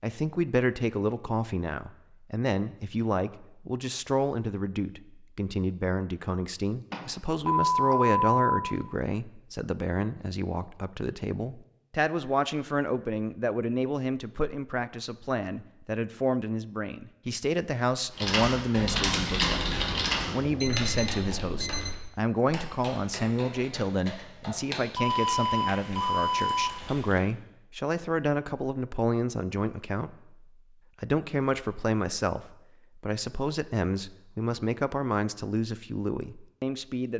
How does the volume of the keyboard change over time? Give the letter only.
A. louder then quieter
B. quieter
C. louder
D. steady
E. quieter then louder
B.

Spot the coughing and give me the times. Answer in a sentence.
The coughing can't be heard in this clip.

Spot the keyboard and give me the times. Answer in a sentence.
The keyboard can be heard from 18.1 to 27.2 s.